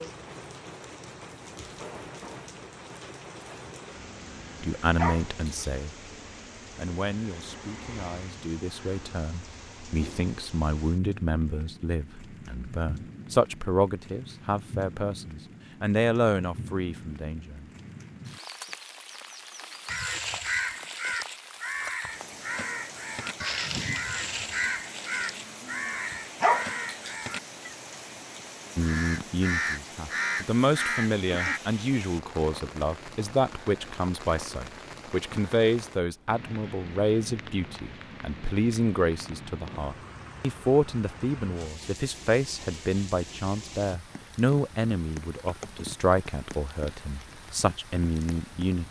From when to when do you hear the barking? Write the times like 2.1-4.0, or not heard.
5.0-5.7, 26.4-27.1.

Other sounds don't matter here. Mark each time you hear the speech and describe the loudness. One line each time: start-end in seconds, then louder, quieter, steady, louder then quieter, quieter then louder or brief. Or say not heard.
4.6-6.0 brief
6.8-17.6 louder
28.8-48.8 steady.